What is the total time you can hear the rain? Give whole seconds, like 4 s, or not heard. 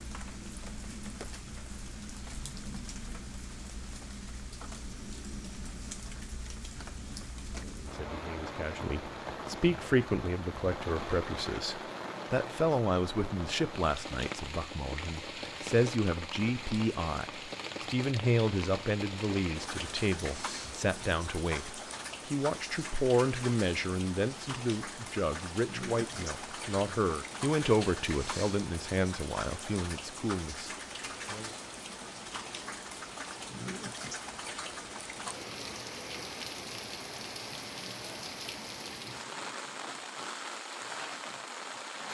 42 s.